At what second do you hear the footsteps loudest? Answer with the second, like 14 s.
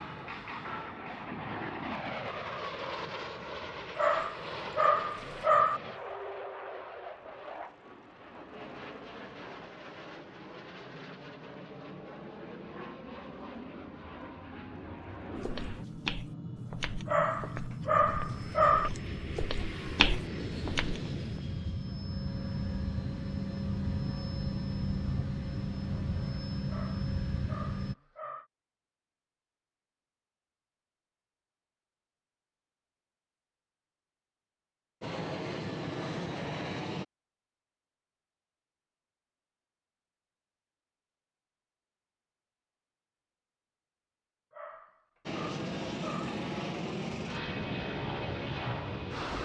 20 s.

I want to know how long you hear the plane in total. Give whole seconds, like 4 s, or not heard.
34 s.